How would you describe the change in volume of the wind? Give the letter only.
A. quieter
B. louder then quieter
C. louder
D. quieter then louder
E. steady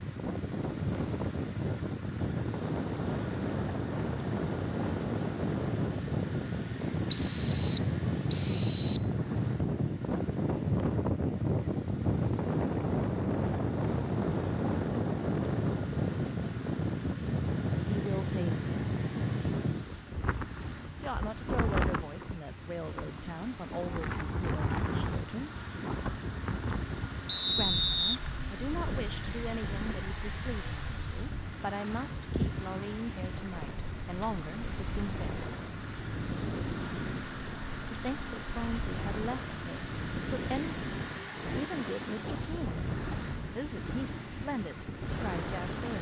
A.